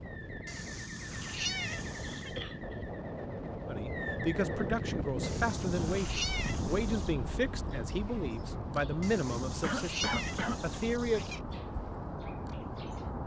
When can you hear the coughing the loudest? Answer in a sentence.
The volume of the coughing peaks at 10 seconds.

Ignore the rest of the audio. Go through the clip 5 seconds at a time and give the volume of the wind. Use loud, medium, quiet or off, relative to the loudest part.
loud, loud, medium.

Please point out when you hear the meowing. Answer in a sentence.
You can hear the meowing from 0.5 to 2.4 s, from 5.2 to 7.2 s and from 9.0 to 11.4 s.